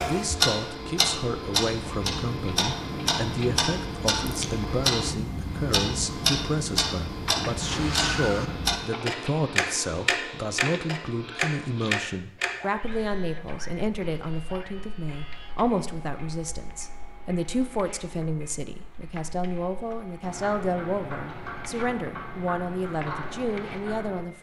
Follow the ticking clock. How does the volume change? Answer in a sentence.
The volume of the ticking clock goes down, then up.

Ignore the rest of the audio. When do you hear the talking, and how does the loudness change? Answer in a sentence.
The talking can be heard from 0.1 to 24.3 s, at a steady volume.